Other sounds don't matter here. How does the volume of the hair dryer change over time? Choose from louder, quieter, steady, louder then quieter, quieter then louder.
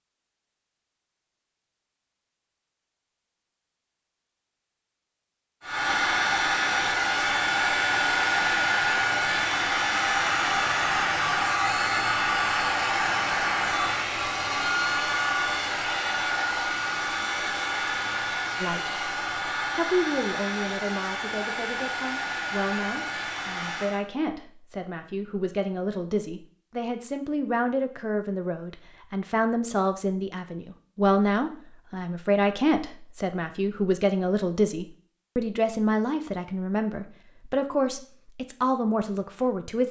quieter.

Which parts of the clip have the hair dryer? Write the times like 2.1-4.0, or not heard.
5.6-24.0.